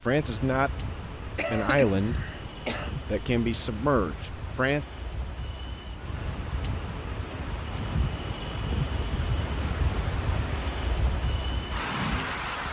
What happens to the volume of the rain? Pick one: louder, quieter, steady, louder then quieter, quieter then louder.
louder.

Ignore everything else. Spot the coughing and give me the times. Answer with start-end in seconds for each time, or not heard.
1.4-3.0.